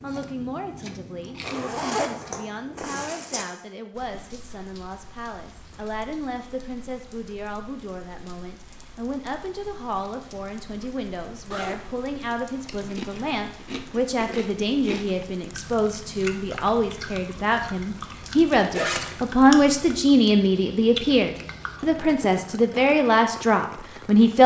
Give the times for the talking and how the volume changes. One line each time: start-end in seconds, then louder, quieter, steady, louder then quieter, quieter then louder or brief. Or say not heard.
0.0-24.4 louder.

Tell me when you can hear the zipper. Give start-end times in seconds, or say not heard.
1.4-3.5, 11.5-12.3, 18.7-19.2.